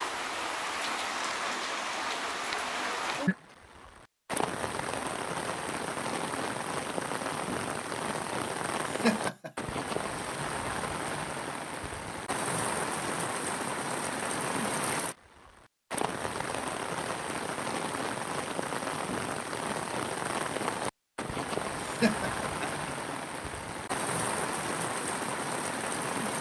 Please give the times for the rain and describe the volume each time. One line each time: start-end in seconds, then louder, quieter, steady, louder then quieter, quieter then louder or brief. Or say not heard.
0.0-26.3 steady.